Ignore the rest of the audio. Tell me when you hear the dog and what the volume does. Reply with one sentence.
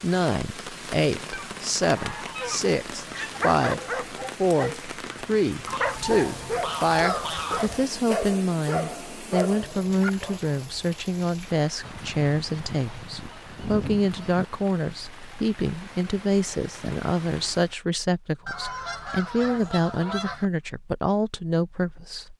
You can hear the dog from 3.0 to 10.4 s, at a steady volume.